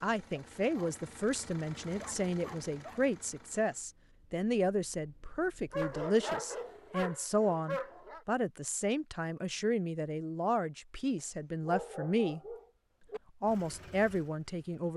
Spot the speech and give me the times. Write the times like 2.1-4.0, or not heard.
0.0-12.4, 13.4-14.9.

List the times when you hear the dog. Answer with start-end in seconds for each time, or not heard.
0.3-0.9, 2.0-3.0, 5.7-8.2, 11.7-13.2.